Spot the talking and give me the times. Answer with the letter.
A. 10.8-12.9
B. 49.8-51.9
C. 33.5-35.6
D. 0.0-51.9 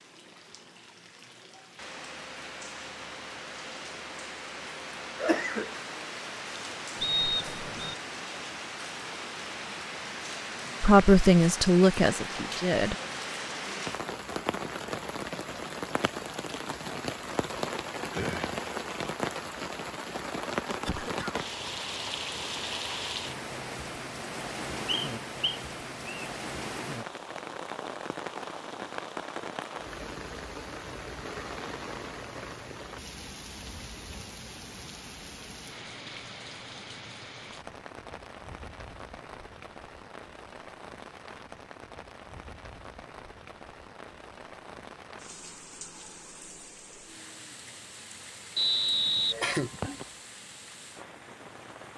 A.